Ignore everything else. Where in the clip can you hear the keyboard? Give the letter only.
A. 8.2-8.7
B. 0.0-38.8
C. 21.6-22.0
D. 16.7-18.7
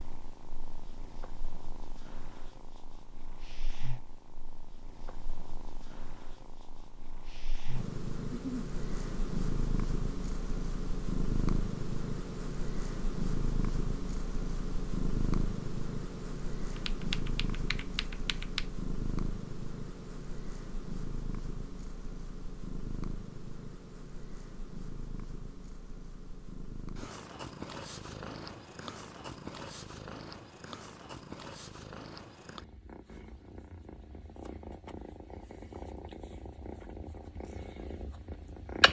D.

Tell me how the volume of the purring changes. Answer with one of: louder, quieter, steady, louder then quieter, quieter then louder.
louder then quieter.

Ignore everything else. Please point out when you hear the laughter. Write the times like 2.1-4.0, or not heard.
8.2-8.7.